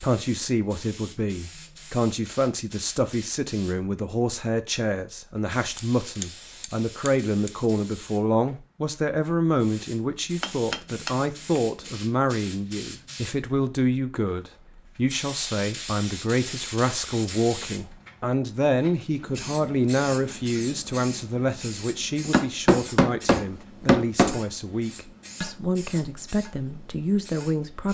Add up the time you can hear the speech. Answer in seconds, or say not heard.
28 s.